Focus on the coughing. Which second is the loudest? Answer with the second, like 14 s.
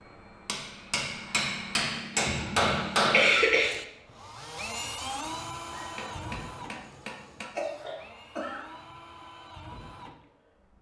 3 s.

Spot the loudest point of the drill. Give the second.
5 s.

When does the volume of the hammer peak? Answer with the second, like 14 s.
3 s.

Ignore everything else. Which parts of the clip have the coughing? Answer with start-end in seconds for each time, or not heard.
2.2-3.7, 7.4-8.6.